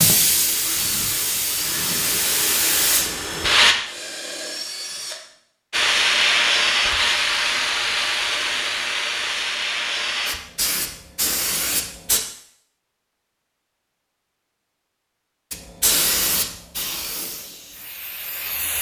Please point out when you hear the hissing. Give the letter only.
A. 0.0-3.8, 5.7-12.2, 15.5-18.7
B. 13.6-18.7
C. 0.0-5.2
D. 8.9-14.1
A.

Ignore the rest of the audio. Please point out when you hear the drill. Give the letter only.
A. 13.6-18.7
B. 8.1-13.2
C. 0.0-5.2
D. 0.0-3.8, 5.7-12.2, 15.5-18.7
C.